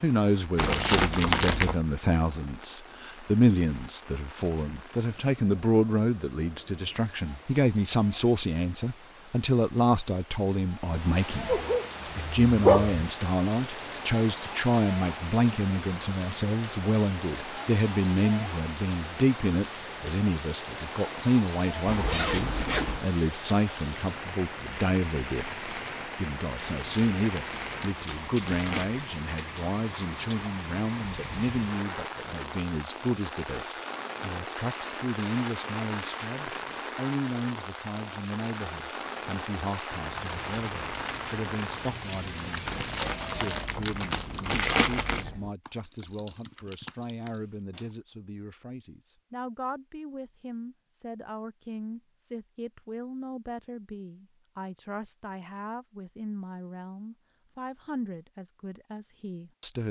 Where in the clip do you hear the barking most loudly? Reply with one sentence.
The loudest moment of the barking is at 13 seconds.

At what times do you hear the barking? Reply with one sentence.
The barking can be heard from 11.4 to 13.0 s.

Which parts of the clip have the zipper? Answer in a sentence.
The zipper can be heard from 21.9 to 23.1 s.